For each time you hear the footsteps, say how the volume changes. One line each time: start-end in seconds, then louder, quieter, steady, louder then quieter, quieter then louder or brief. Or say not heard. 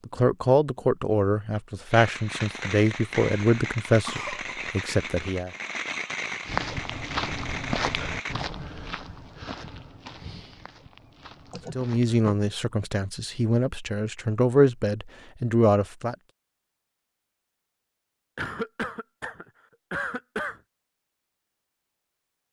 6.5-12.2 quieter.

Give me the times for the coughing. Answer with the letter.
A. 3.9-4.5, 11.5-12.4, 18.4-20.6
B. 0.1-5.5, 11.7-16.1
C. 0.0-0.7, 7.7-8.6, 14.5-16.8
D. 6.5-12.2
A.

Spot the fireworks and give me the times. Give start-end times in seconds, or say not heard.
1.9-8.3.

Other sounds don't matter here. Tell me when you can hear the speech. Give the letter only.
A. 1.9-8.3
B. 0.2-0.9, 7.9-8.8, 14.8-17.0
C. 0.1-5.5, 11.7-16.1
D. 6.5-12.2
C.